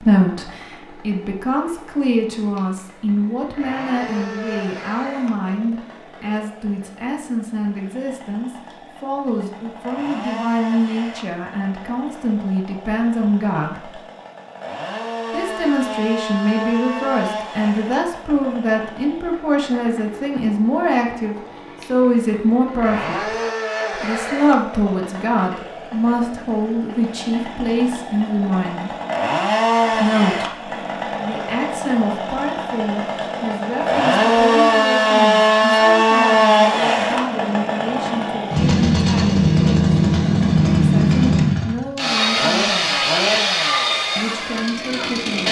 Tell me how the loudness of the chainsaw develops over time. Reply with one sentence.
The volume of the chainsaw goes up.